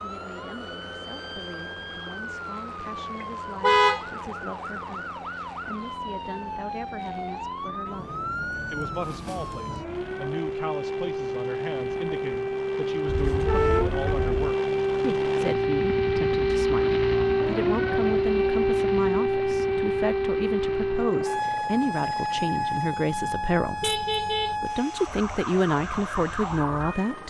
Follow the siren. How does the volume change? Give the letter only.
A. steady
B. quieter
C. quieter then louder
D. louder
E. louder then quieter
E.